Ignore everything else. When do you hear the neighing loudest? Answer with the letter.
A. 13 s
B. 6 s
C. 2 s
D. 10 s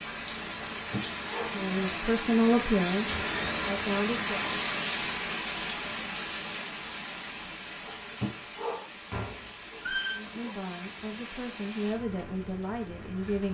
D.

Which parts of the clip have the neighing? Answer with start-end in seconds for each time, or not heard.
3.0-3.9, 9.1-10.2.